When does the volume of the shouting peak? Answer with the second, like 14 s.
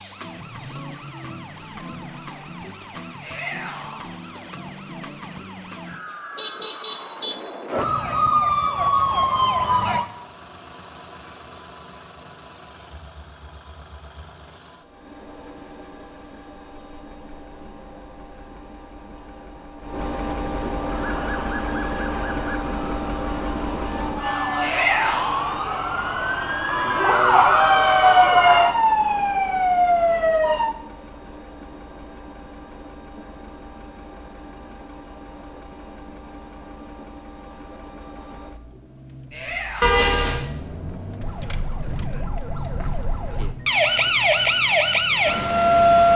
25 s.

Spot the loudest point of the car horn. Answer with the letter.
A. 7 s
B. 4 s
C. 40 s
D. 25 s
C.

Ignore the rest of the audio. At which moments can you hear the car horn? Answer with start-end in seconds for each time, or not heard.
6.1-7.4, 39.8-40.5.